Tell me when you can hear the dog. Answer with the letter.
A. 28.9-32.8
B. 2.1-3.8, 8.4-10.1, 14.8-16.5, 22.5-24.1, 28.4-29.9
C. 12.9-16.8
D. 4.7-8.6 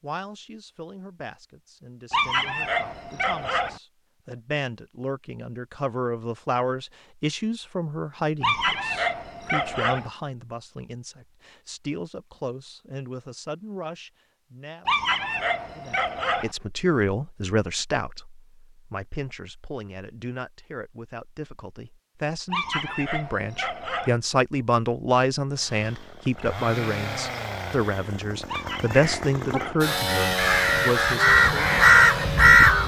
B.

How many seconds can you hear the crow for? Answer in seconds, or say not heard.
4 s.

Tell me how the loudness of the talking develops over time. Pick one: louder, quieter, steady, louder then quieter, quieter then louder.
louder.